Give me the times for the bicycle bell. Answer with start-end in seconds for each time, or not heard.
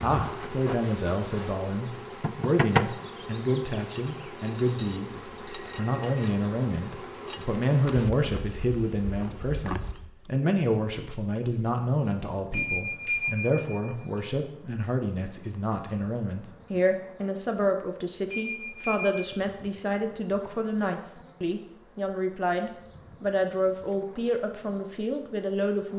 5.5-6.3, 12.5-13.9, 18.3-19.4.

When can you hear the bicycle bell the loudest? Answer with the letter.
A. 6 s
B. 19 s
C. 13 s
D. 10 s
C.